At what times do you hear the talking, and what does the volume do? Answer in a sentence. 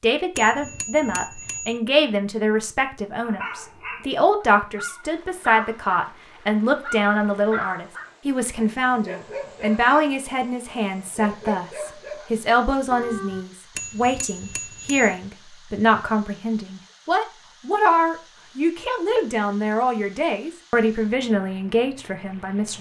You can hear the talking from 0.0 to 22.7 s, at a steady volume.